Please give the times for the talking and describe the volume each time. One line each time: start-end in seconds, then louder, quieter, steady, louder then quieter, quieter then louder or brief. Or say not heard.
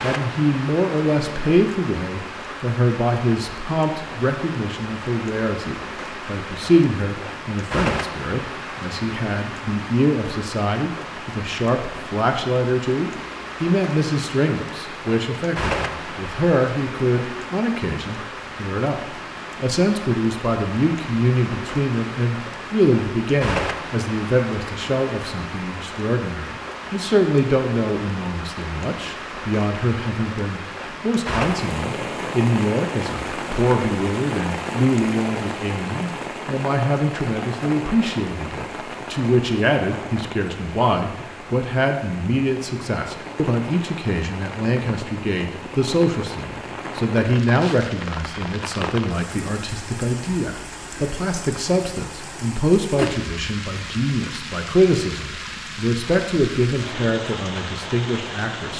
0.0-58.7 steady.